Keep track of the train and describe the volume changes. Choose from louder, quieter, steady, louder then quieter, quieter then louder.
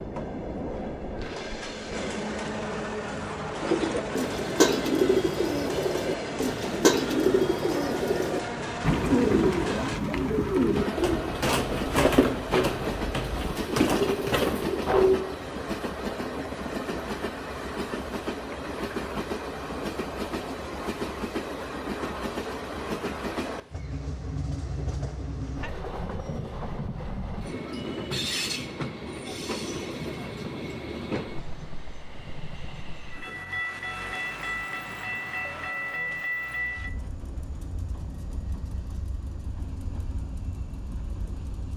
steady.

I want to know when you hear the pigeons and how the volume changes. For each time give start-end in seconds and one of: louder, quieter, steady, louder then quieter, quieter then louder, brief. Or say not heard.
3.6-15.2 steady.